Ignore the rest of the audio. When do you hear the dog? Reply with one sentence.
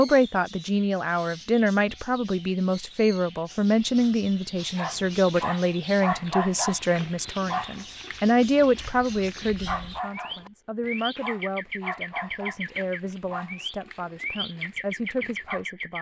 The dog can be heard from 4.6 to 15.7 s.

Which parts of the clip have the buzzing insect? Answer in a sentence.
You can't hear the buzzing insect here.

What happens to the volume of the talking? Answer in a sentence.
The loudness of the talking goes down.